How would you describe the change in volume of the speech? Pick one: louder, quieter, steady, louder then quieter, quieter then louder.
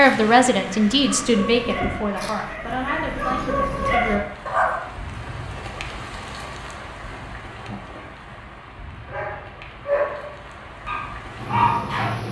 quieter.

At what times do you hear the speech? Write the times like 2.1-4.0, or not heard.
0.0-4.2.